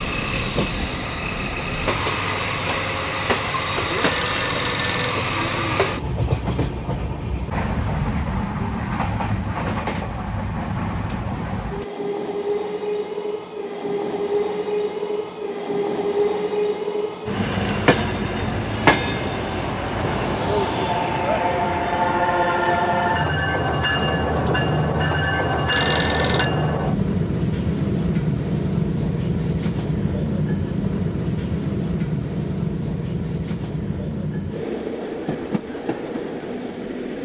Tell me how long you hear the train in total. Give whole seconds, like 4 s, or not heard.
37 s.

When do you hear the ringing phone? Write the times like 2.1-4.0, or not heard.
4.0-5.2, 25.7-26.5.